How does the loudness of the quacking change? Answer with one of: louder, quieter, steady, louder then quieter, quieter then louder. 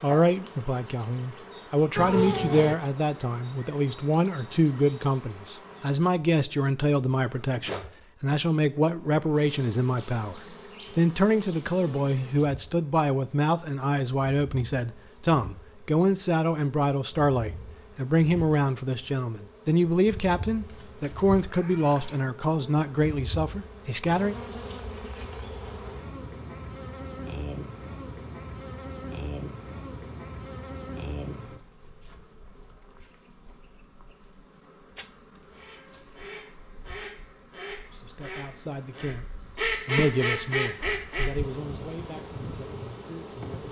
louder.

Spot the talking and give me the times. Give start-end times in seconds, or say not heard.
0.0-24.4, 37.9-39.2, 39.9-43.6.